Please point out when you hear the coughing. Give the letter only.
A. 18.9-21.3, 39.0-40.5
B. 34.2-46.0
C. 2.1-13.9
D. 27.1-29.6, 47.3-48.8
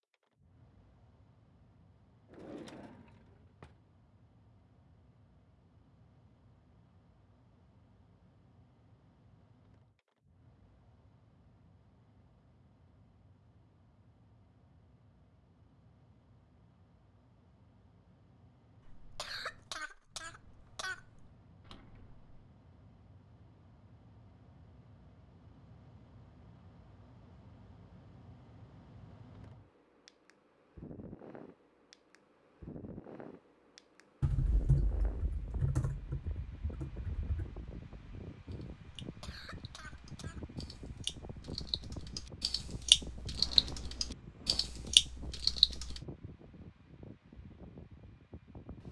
A.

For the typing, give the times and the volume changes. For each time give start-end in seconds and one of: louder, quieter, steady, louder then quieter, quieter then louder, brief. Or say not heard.
34.2-46.0 quieter then louder.